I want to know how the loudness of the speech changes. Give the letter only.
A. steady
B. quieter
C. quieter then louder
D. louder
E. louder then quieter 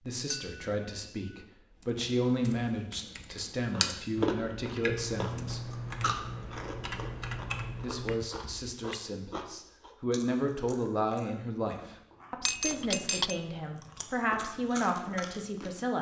A.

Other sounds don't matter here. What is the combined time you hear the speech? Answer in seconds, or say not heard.
14 s.